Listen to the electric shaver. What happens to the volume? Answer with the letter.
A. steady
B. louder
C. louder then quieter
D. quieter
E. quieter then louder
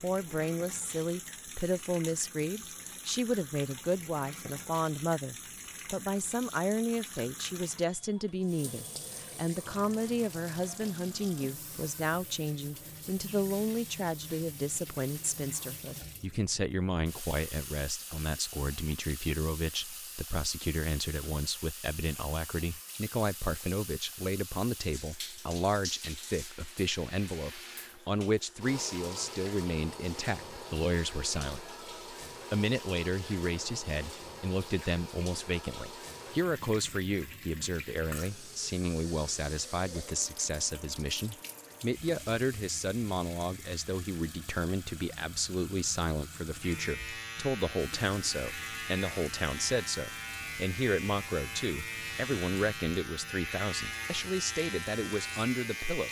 A.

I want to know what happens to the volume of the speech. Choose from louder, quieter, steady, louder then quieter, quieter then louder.
steady.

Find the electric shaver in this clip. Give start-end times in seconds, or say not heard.
46.6-56.0.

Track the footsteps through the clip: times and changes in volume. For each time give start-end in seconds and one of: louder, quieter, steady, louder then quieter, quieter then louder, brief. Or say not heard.
not heard.